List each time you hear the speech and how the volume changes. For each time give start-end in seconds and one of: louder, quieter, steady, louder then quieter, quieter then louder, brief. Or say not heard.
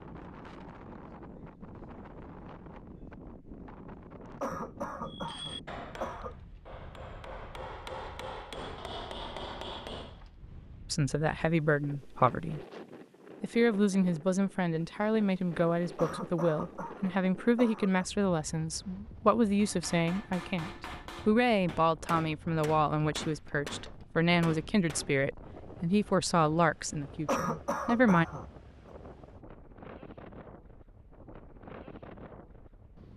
10.9-12.6 brief
13.4-28.2 steady.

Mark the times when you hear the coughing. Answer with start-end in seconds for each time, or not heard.
4.4-6.3, 15.9-18.1, 27.2-28.4.